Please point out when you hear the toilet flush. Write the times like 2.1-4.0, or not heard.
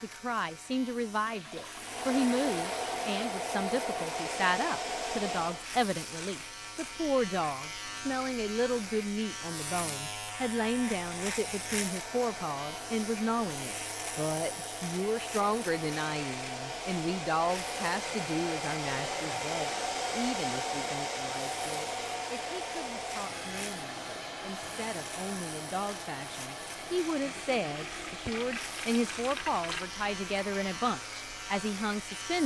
1.2-3.1, 27.1-29.9.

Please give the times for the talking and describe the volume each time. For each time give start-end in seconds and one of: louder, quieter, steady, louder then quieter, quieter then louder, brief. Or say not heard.
0.0-32.4 quieter then louder.